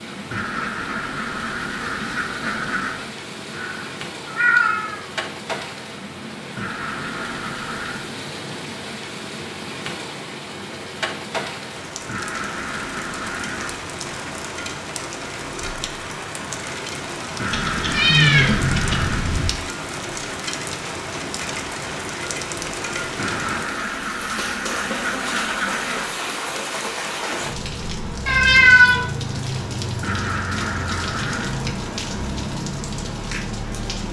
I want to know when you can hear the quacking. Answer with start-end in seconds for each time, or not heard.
0.3-3.0, 6.5-8.1, 12.1-13.8, 17.4-19.2, 23.1-26.1, 30.0-31.6.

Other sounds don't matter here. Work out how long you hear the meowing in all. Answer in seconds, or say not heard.
4 s.